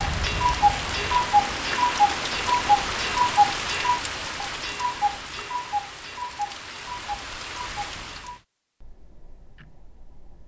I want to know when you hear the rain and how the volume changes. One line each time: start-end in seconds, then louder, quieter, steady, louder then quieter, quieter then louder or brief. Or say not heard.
0.0-8.4 quieter.